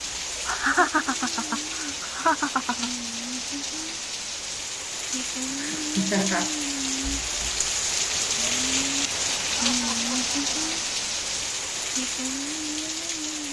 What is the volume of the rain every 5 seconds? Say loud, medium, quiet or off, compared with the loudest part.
medium, loud, loud.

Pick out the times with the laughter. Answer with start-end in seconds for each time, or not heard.
0.5-2.9, 5.5-6.5, 9.6-10.6.